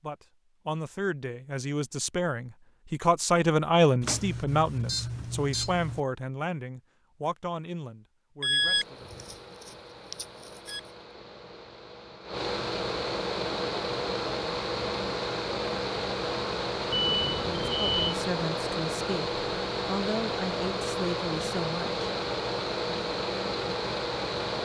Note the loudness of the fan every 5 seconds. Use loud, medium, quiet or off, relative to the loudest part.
off, quiet, loud, loud, loud.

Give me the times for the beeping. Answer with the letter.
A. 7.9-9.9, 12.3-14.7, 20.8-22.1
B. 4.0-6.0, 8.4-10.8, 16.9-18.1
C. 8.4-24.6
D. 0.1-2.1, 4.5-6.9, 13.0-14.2
B.